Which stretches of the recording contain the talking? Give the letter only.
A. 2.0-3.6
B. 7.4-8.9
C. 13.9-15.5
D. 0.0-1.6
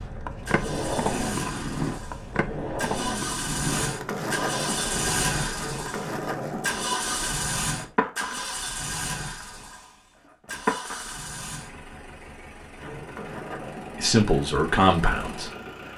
C.